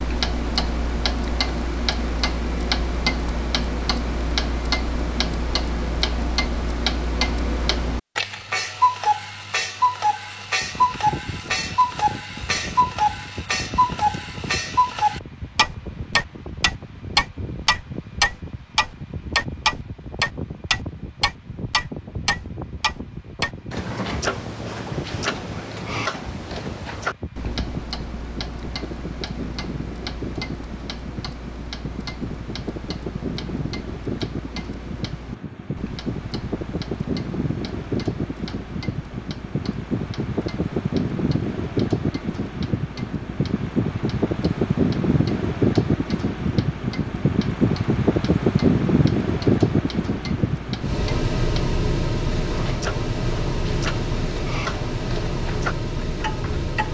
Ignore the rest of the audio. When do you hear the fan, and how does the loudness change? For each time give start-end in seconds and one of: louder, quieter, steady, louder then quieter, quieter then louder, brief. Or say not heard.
10.6-56.9 louder.